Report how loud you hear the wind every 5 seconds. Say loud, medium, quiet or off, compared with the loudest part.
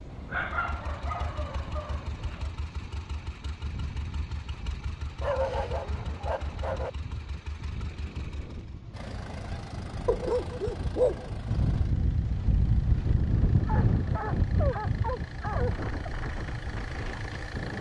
quiet, quiet, loud, medium.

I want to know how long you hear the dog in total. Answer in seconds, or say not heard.
8 s.